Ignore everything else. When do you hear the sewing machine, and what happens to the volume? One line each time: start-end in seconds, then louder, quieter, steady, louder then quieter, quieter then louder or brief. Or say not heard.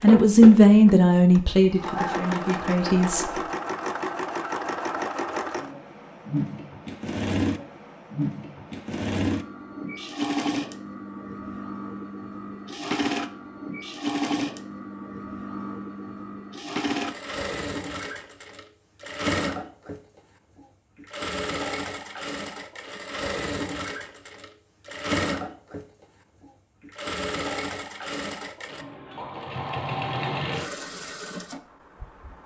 0.0-32.4 steady.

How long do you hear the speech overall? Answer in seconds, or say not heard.
3 s.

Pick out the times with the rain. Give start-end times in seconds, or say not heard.
not heard.